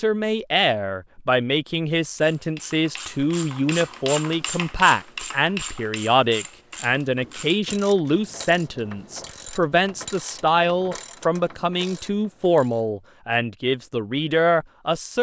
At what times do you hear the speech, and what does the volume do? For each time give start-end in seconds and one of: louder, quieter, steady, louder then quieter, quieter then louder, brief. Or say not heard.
0.0-15.1 steady.